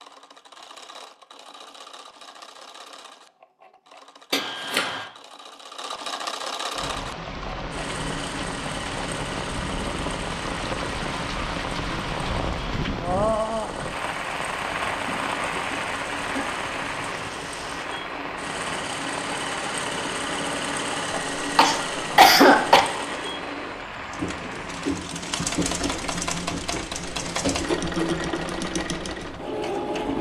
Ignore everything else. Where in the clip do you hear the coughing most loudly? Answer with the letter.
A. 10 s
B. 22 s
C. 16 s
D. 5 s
B.